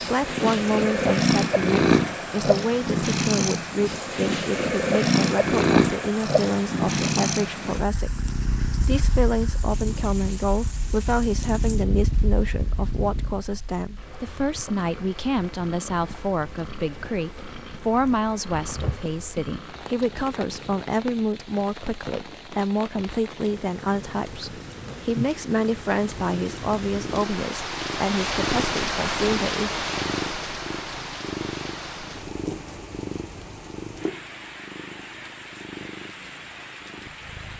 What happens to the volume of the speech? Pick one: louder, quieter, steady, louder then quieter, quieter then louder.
steady.